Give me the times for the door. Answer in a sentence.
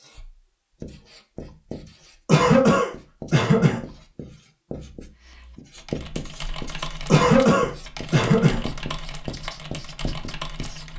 The door can't be heard in this clip.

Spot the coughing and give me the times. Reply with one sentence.
You can hear the coughing from 2.2 to 3.8 s and from 7.0 to 8.6 s.